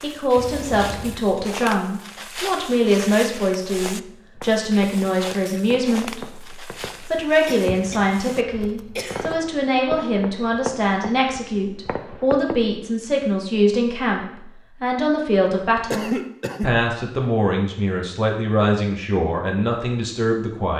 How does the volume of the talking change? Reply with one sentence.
The loudness of the talking stays about the same.